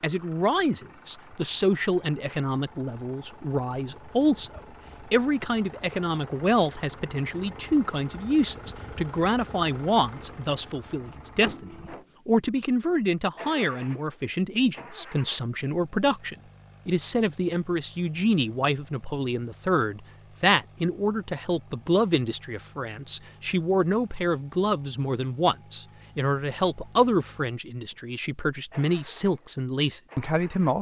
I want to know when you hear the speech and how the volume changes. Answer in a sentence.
You can hear the speech from 0.0 to 30.7 s, at a steady volume.